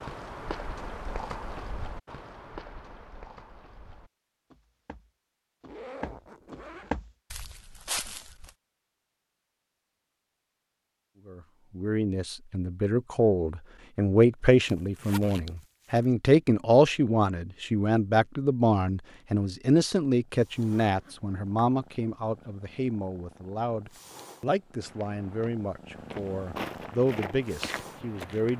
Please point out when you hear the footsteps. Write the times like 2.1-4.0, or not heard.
0.0-8.5, 24.8-28.5.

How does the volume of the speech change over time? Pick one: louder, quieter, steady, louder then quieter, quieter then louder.
quieter.